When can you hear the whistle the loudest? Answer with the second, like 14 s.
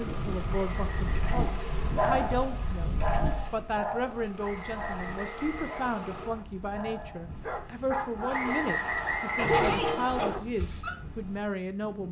9 s.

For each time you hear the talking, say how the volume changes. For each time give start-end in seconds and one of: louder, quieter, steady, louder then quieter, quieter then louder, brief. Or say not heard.
0.0-12.0 steady.